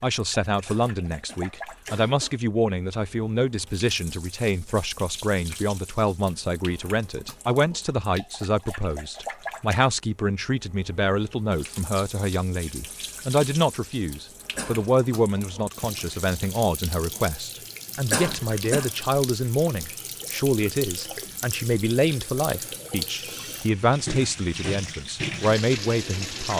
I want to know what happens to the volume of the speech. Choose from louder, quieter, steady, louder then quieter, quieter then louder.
steady.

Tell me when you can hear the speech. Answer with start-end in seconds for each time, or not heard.
0.0-26.5.